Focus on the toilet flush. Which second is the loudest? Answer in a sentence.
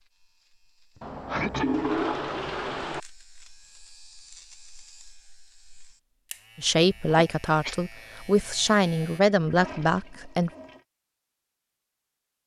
The volume of the toilet flush peaks at 2 seconds.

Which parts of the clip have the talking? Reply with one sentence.
The talking can be heard from 6.5 to 10.5 s.